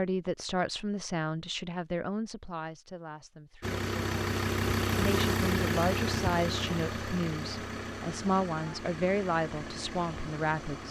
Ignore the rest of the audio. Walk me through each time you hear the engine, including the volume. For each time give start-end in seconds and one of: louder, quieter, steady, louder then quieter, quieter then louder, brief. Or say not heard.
3.6-10.8 quieter.